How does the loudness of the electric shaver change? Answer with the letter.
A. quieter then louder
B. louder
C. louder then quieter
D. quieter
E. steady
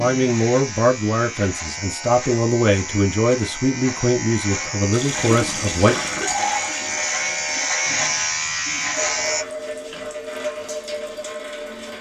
B.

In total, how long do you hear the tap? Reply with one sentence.
The tap can be heard for 7 seconds in total.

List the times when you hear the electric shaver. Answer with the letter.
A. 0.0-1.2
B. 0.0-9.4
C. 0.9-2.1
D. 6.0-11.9
B.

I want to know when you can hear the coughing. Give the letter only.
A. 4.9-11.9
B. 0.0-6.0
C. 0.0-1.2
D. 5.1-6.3
D.